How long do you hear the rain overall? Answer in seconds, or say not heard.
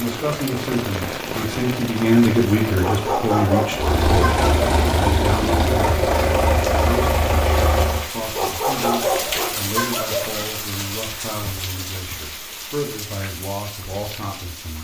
15 s.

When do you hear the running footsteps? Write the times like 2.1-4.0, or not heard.
not heard.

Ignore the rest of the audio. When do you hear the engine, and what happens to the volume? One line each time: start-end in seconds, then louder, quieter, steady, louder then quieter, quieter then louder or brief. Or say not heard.
3.7-8.1 steady.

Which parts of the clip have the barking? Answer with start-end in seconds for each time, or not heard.
2.8-4.7, 8.3-10.2.